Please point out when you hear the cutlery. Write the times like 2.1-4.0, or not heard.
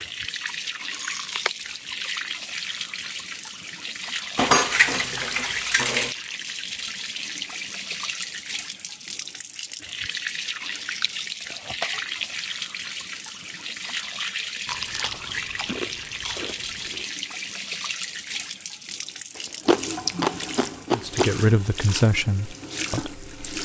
4.3-6.2.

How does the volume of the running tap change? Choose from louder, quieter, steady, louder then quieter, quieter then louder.
steady.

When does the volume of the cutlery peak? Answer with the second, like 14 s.
5 s.